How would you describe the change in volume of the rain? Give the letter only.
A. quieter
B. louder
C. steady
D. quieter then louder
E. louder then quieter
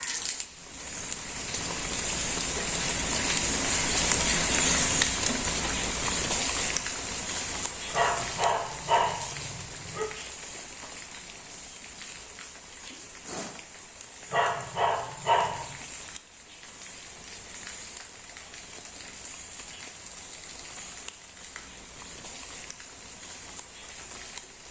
A.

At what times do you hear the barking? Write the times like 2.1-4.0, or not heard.
7.9-10.1, 14.3-15.8.